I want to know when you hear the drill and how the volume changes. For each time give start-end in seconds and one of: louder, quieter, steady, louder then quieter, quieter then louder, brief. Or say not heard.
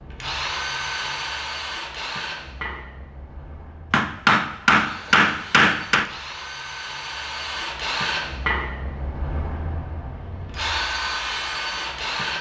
0.0-12.3 quieter then louder.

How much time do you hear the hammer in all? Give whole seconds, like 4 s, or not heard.
2 s.